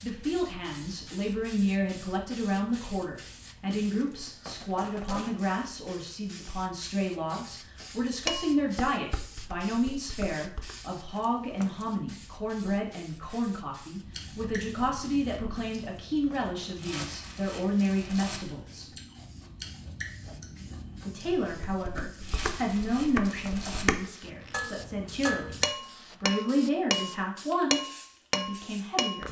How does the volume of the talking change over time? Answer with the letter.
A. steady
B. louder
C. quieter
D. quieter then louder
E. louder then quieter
A.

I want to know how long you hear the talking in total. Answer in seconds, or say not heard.
27 s.